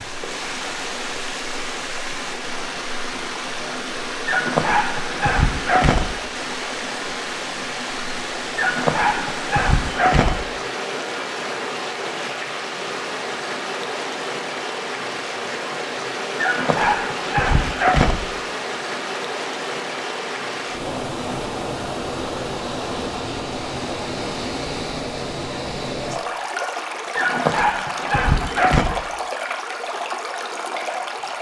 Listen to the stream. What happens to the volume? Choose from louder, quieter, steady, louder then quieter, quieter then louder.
steady.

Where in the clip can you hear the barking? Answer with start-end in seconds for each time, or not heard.
4.2-6.2, 8.6-10.4, 16.4-18.2, 27.1-28.9.